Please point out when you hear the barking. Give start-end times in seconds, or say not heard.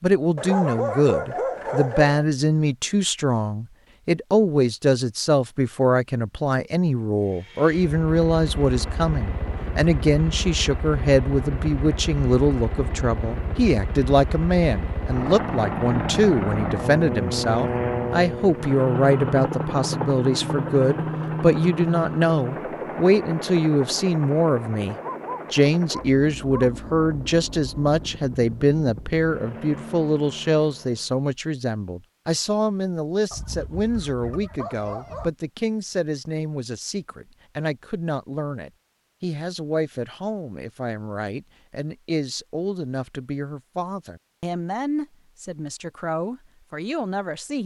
0.3-2.2, 25.0-26.8, 33.3-35.3.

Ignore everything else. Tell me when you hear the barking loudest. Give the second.
1 s.